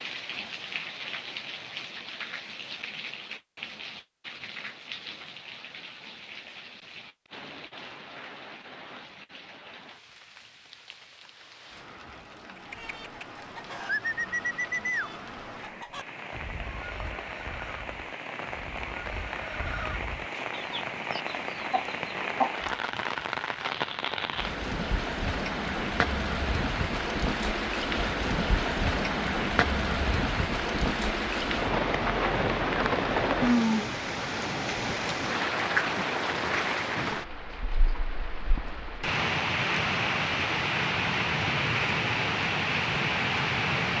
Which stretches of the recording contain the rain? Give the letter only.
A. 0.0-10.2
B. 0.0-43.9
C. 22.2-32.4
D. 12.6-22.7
B.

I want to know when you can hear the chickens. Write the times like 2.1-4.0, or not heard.
12.6-22.7.